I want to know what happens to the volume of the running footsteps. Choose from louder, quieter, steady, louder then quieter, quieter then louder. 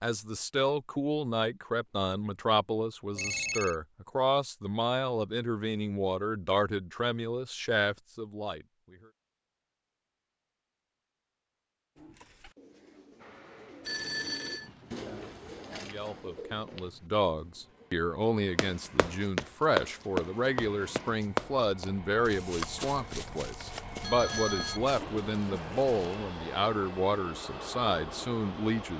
quieter.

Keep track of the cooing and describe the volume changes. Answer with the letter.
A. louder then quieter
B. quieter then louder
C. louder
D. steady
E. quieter
A.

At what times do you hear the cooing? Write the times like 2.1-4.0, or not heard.
11.9-17.9.